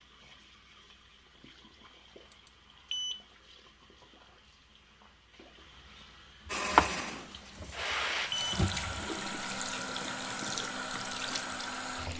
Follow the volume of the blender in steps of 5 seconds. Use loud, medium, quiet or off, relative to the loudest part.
off, loud, medium.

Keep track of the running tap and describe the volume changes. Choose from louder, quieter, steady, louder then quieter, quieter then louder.
louder.